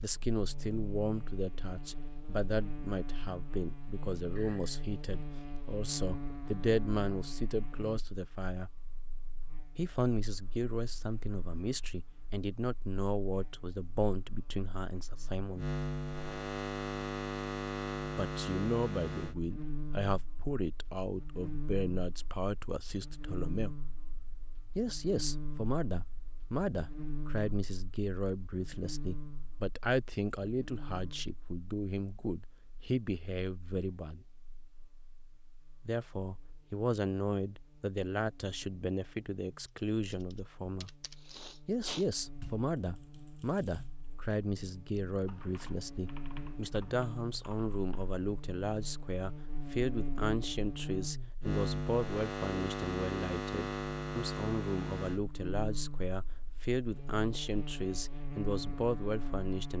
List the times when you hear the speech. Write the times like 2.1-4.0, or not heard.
0.0-8.7, 9.8-15.8, 18.1-23.8, 24.8-34.2, 35.9-41.0, 41.6-59.7.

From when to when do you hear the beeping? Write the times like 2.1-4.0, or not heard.
not heard.